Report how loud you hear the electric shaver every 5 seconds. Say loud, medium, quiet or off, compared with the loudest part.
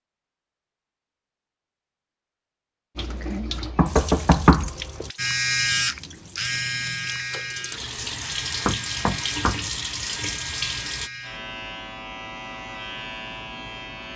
off, loud, medium.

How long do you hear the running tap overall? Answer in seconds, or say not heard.
8 s.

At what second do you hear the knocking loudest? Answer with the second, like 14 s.
4 s.